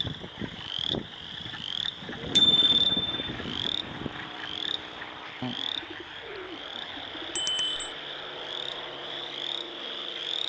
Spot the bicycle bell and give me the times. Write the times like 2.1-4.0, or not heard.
2.4-3.1, 7.3-7.9.